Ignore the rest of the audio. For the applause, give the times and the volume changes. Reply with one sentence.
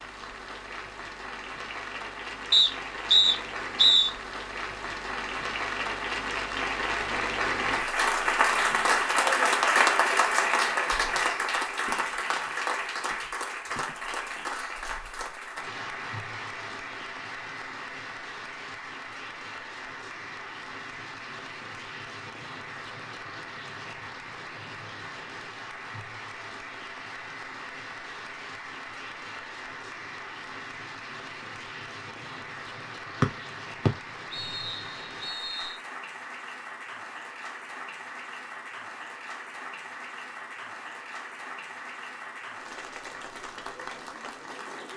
The applause can be heard from 0.0 to 44.9 s, getting quieter.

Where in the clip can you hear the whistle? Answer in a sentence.
The whistle can be heard from 2.5 to 4.1 s and from 33.9 to 35.8 s.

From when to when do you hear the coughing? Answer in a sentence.
The coughing can't be heard in this clip.